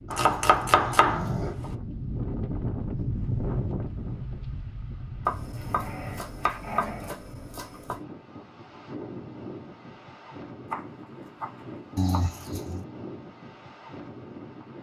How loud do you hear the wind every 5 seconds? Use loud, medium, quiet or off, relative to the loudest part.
loud, medium, medium.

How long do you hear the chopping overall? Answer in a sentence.
The chopping can be heard for 6 seconds in total.